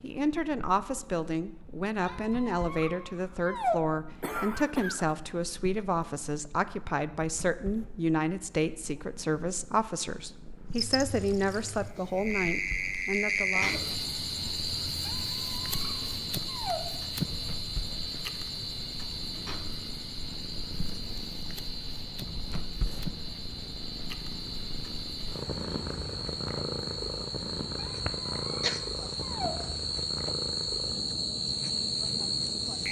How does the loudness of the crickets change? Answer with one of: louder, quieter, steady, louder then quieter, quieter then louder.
quieter then louder.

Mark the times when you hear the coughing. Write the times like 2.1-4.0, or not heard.
4.2-5.2, 13.3-14.1, 27.9-28.8.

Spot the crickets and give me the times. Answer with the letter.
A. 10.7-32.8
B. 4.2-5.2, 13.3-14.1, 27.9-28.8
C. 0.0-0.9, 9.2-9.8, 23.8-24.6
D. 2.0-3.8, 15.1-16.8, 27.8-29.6
A.